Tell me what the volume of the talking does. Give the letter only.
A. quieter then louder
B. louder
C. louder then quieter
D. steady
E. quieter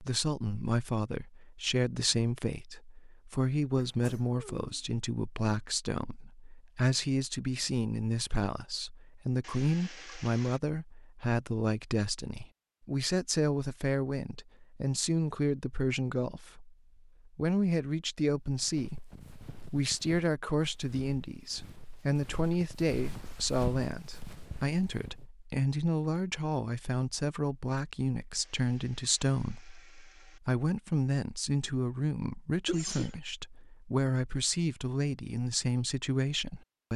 D.